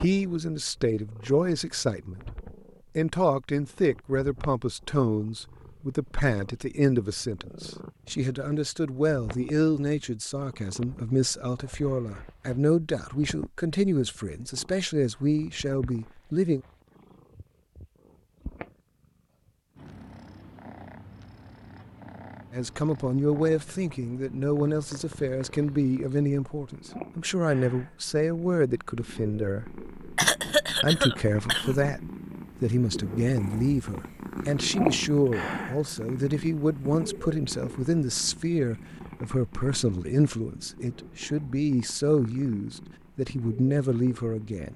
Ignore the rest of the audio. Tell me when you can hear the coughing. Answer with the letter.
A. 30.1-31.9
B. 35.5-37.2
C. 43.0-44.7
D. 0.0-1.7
A.